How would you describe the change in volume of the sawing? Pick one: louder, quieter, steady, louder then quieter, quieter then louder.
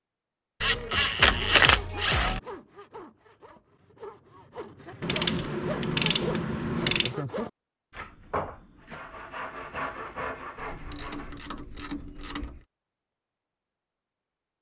louder.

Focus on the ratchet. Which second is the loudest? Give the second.
2 s.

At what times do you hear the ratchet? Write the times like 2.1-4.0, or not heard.
0.6-2.4, 5.0-7.2, 10.6-12.7.